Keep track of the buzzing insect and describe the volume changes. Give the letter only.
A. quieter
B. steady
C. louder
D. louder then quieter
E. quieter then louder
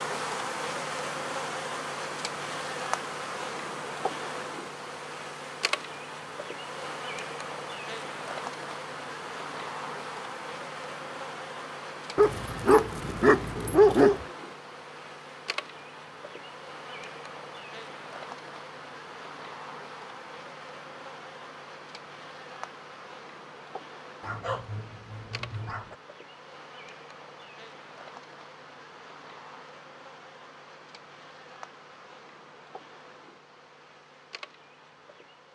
A.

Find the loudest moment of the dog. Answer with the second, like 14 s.
14 s.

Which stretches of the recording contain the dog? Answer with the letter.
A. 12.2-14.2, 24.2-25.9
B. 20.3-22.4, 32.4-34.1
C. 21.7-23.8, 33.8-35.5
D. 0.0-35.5
A.